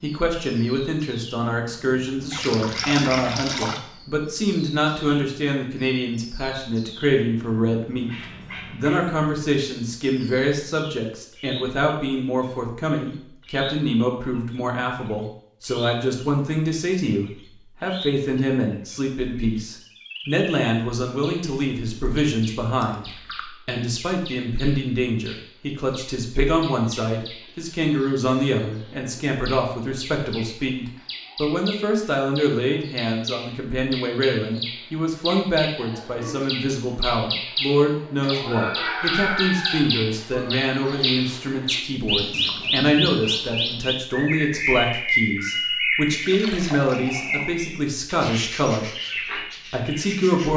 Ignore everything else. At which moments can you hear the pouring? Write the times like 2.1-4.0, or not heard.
2.3-3.8, 22.8-23.4, 46.2-47.6.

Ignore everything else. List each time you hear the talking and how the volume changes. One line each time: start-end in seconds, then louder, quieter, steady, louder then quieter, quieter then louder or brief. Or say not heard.
0.0-50.5 steady.